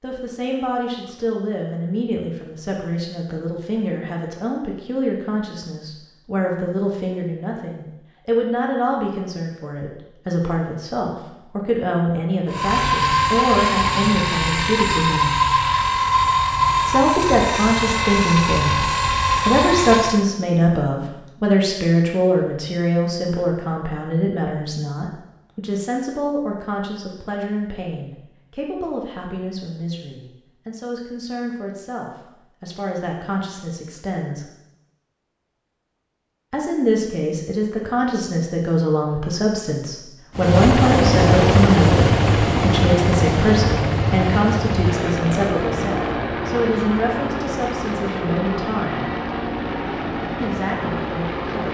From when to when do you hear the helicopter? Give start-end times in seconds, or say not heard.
12.4-20.2, 40.4-51.7.